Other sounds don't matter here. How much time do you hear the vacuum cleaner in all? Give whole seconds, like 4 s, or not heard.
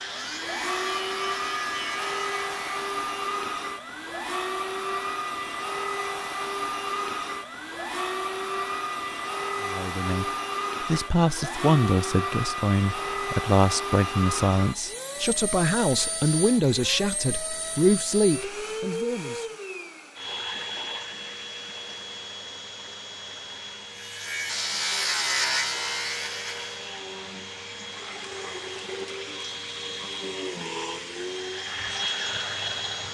33 s.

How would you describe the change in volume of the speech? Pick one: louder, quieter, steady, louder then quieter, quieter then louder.
steady.